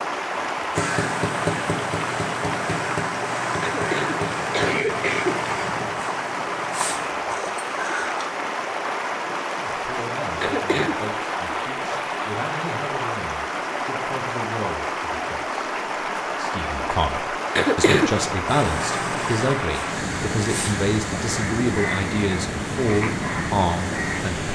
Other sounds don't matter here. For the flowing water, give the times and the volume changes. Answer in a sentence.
The flowing water can be heard from 0.0 to 24.5 s, at a steady volume.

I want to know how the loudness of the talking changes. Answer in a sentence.
The loudness of the talking goes up.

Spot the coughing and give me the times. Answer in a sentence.
You can hear the coughing from 3.6 to 6.0 s, from 10.4 to 11.0 s and from 17.6 to 18.4 s.